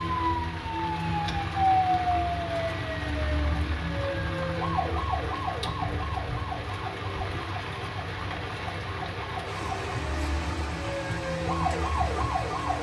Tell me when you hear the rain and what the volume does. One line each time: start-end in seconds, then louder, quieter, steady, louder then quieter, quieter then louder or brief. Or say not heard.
0.0-12.7 steady.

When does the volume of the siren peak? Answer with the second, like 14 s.
2 s.